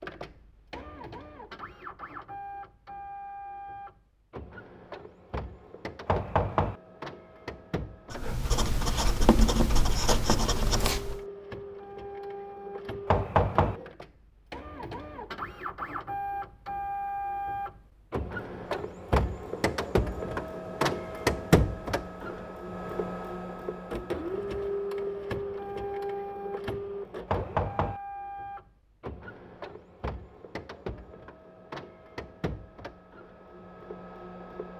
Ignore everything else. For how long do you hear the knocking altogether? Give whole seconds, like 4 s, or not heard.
2 s.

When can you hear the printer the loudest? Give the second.
21 s.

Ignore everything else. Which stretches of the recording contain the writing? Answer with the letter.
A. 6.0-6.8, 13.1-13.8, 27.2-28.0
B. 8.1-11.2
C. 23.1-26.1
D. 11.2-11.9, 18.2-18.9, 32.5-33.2
B.